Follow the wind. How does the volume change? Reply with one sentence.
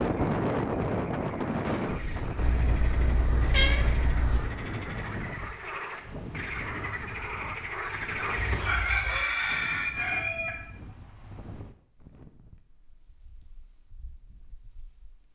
The loudness of the wind goes down.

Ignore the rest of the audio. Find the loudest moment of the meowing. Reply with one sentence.
The volume of the meowing peaks at 4 seconds.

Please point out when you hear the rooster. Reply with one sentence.
You can hear the rooster from 8.7 to 10.6 s.